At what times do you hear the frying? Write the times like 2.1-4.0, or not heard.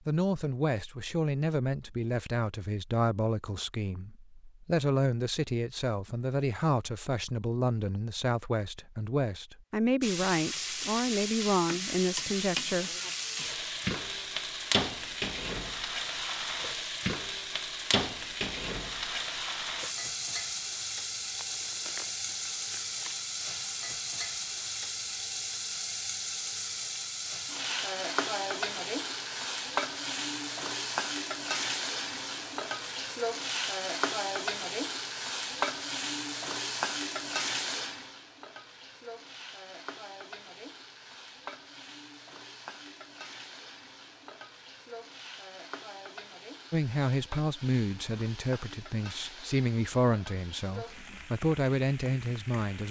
10.0-52.8.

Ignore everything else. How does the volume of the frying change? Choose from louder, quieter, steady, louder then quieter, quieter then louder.
quieter.